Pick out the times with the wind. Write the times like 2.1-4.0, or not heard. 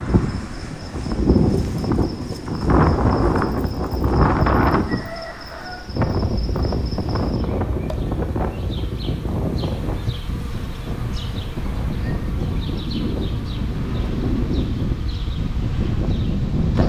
0.0-16.8.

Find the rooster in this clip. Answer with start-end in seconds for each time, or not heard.
4.8-5.9.